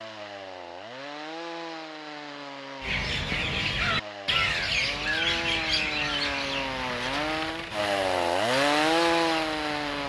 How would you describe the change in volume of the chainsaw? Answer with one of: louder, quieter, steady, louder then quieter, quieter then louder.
louder.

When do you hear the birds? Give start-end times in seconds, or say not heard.
2.8-10.0.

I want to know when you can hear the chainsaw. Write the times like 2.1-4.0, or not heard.
0.0-10.0.